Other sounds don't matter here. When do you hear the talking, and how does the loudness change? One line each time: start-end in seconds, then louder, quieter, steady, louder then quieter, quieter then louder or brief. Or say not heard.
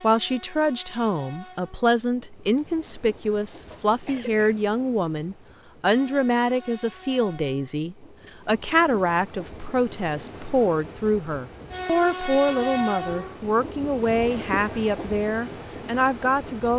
0.0-16.7 steady.